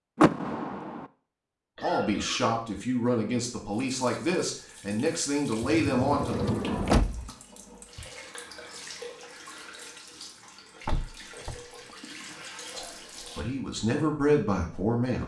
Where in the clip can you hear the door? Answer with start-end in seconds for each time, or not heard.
0.1-1.1, 5.6-7.3, 10.8-11.6.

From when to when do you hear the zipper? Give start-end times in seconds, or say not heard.
not heard.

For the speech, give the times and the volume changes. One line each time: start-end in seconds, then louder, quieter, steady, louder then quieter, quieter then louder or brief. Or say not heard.
1.8-6.3 steady
12.8-15.2 brief.